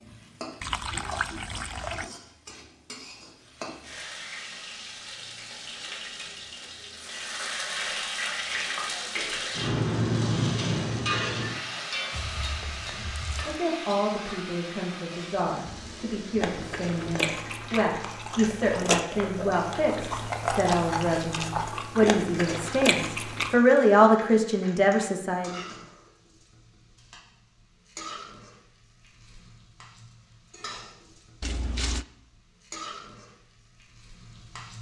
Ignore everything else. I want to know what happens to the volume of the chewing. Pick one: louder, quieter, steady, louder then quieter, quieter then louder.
steady.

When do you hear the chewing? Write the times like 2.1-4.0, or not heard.
16.4-23.6.